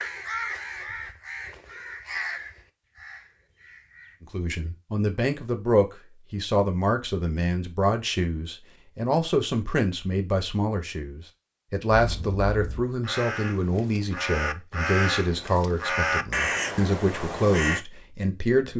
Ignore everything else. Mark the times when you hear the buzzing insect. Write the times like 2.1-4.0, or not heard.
not heard.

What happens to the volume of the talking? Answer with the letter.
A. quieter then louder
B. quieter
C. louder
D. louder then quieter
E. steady
E.